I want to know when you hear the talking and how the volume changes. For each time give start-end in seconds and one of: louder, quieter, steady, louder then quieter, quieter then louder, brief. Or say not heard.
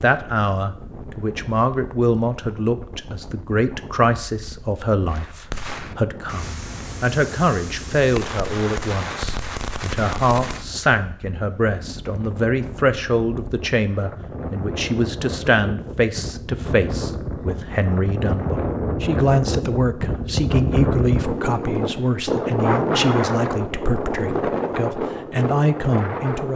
0.0-26.5 steady.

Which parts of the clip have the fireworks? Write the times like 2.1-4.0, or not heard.
5.0-10.7.